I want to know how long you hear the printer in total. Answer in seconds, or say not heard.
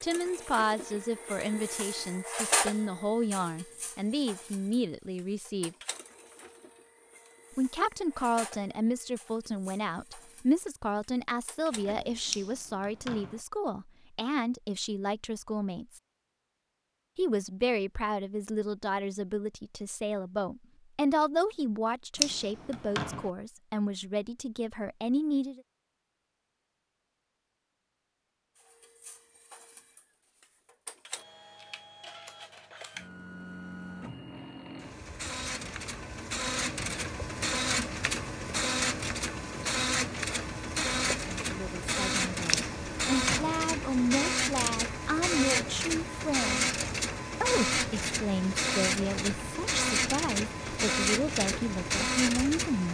37 s.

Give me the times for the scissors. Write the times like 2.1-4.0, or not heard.
12.2-13.4, 22.1-23.3, 42.5-43.6.